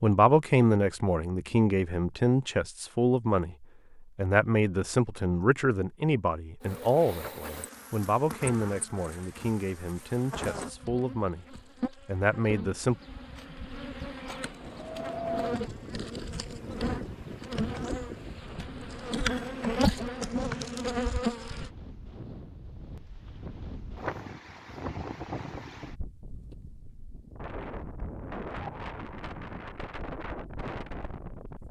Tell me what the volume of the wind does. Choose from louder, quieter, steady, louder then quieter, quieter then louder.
quieter then louder.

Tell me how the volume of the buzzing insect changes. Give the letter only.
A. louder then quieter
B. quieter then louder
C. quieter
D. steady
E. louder
E.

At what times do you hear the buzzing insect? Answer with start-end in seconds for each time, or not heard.
6.6-21.7.